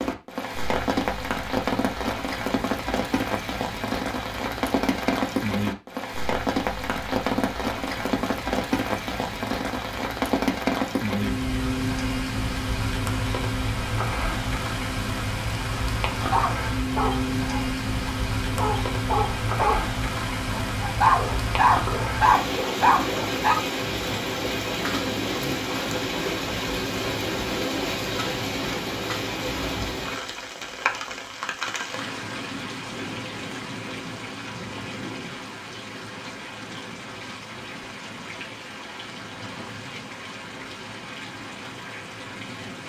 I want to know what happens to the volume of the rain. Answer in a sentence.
The volume of the rain goes down.